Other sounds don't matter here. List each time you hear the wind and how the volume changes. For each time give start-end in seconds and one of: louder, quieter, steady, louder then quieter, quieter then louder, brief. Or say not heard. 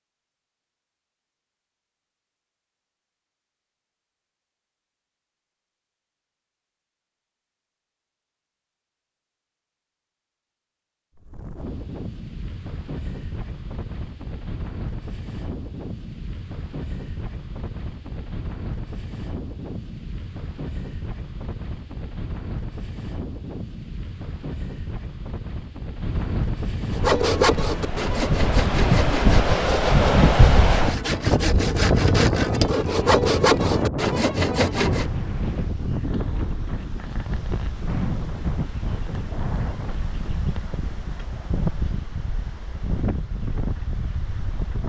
11.2-44.8 louder then quieter.